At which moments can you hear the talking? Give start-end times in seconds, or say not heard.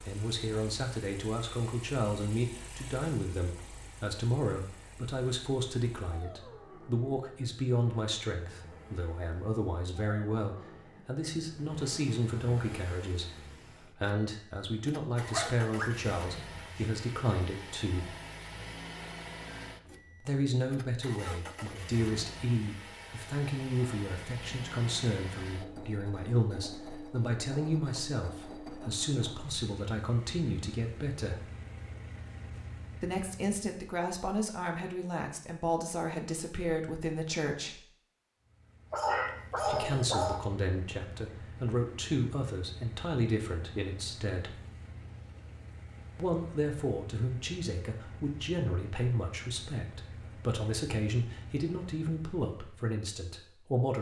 0.0-18.1, 20.2-31.4, 33.0-37.8, 39.6-44.5, 46.1-53.9.